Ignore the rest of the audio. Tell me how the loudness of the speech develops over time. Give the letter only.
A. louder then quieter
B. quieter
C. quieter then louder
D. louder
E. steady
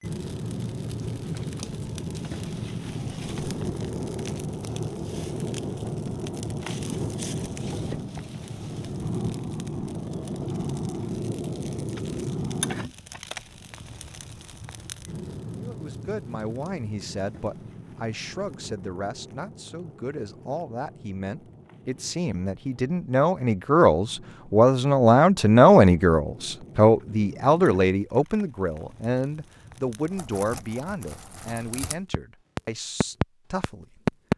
A.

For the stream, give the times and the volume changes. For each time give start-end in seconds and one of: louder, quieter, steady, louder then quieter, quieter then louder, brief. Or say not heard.
not heard.